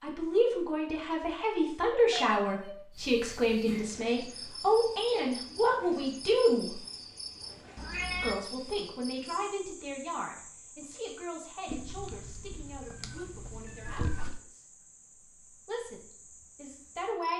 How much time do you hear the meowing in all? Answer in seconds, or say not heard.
4 s.